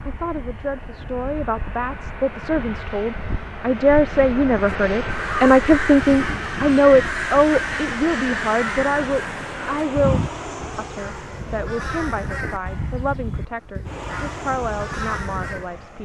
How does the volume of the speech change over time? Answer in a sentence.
The volume of the speech goes up, then down.